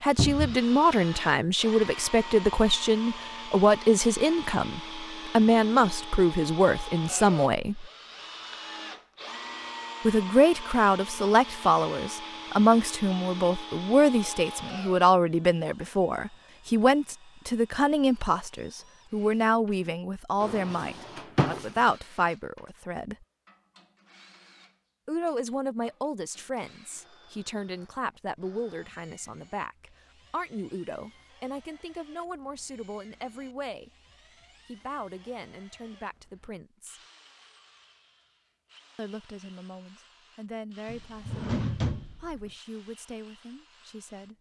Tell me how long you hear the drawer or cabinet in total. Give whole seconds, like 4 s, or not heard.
3 s.